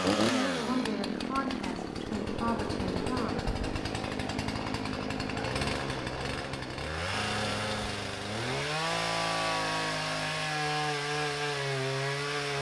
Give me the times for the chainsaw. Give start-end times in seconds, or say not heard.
0.0-12.5.